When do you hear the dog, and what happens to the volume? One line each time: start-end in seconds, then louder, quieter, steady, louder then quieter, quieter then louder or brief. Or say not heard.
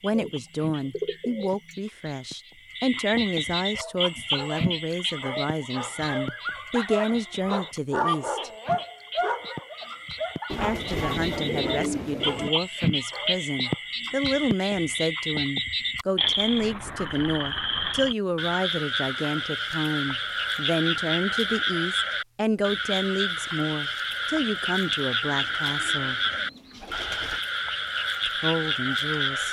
3.7-13.9 louder then quieter.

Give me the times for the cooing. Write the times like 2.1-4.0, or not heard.
0.1-1.8, 10.4-12.5, 25.2-27.4.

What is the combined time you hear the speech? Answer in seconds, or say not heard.
25 s.